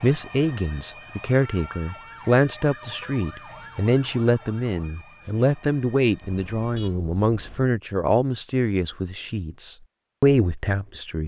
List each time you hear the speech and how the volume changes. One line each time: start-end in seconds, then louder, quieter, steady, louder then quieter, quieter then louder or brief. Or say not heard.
0.0-11.2 steady.